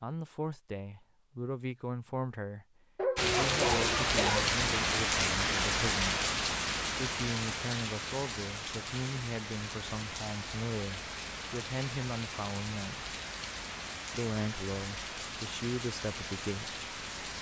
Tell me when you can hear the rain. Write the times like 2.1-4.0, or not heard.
3.1-17.3.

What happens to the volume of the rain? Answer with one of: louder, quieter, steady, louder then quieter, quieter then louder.
quieter.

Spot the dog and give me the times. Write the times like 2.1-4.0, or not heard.
3.0-4.5.